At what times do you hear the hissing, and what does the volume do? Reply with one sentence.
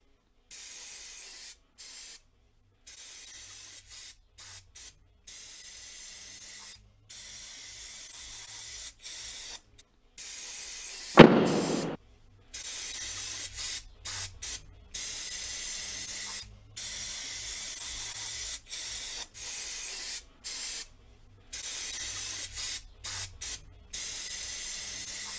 You can hear the hissing from 0.1 to 25.3 s, getting louder.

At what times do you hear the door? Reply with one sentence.
The door can be heard from 11.2 to 11.9 s.